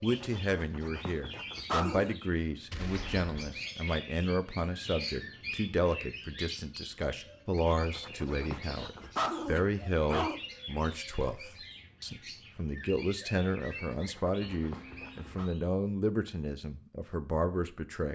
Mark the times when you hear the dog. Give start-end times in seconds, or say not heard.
0.1-2.1, 7.5-10.4, 13.9-15.5.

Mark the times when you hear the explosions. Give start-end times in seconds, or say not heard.
2.7-3.6.